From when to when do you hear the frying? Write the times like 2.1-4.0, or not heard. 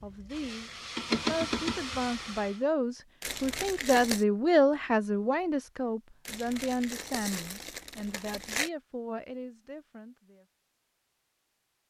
0.0-2.6.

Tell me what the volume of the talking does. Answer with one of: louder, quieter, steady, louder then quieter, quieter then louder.
louder then quieter.